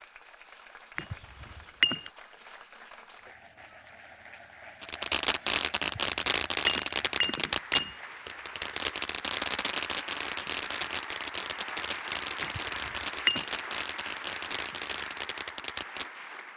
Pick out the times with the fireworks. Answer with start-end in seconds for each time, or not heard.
4.8-16.1.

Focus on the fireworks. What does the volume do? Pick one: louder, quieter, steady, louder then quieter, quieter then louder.
quieter.